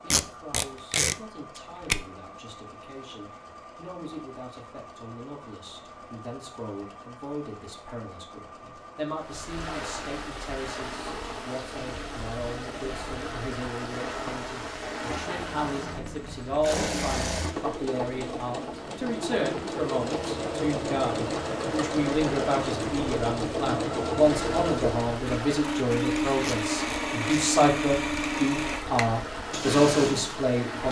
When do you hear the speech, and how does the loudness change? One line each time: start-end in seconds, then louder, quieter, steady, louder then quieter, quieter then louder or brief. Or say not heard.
0.0-30.8 louder.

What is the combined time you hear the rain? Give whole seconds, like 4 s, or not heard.
22 s.